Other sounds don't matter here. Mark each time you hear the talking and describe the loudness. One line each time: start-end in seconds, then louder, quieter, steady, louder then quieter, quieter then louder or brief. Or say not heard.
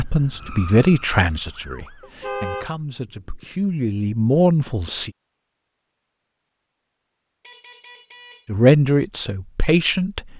0.0-5.1 quieter then louder
8.4-10.3 brief.